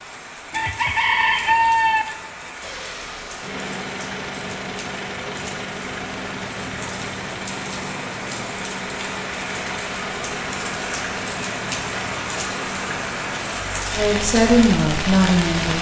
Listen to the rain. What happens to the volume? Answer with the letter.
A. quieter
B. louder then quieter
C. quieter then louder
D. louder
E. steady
D.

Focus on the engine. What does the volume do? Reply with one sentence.
The volume of the engine stays about the same.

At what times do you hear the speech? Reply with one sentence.
The speech can be heard from 13.9 to 15.7 s.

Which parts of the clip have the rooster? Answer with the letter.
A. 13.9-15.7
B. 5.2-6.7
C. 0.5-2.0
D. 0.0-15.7
C.